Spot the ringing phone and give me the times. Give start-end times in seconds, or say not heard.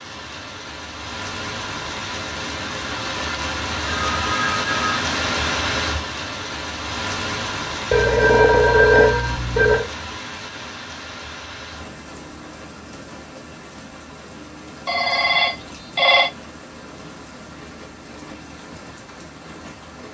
3.8-5.0, 7.9-9.8, 14.8-16.3.